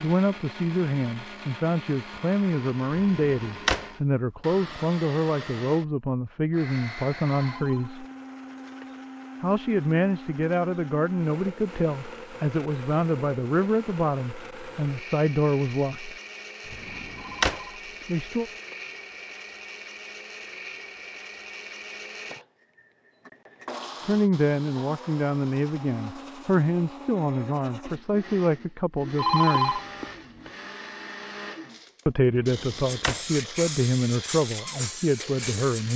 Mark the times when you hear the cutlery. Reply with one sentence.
You can't hear the cutlery here.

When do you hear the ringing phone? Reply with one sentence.
The ringing phone can be heard from 7.4 to 9.0 s, from 17.1 to 18.9 s and from 29.1 to 30.5 s.